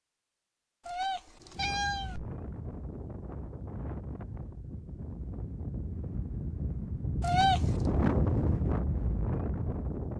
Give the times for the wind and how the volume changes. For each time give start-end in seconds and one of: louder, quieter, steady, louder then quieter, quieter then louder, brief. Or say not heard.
1.5-10.1 louder.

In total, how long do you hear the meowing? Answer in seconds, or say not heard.
2 s.